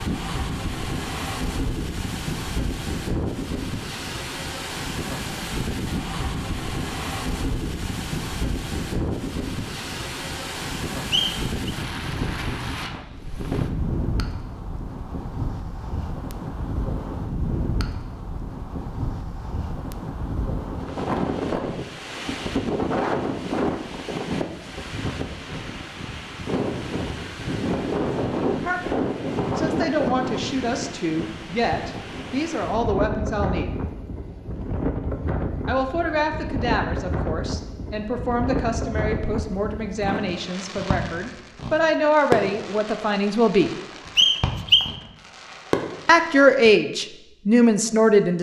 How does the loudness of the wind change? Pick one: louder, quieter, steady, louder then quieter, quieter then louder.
steady.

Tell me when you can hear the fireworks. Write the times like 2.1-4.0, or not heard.
40.3-46.7.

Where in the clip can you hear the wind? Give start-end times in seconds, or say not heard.
0.0-40.4.